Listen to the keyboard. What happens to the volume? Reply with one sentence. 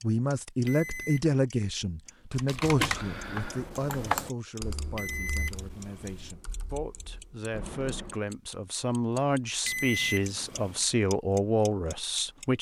The loudness of the keyboard goes down.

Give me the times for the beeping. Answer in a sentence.
You can hear the beeping from 0.7 to 1.2 s, from 5.0 to 6.3 s and from 9.7 to 10.8 s.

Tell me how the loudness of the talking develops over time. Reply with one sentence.
The volume of the talking goes down, then up.